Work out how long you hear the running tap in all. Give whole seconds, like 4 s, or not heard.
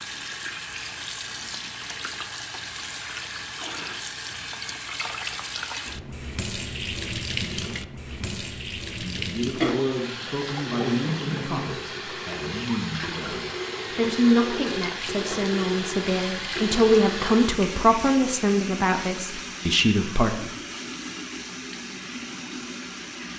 23 s.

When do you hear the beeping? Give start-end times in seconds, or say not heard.
not heard.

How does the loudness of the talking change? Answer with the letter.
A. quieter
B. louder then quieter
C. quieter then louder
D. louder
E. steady
D.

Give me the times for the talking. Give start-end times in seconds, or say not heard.
8.1-20.3.